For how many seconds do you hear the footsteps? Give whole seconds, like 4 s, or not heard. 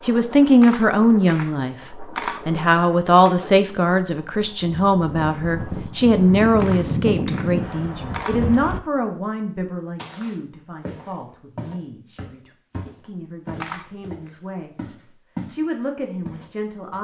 6 s.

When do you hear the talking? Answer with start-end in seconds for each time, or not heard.
0.0-17.0.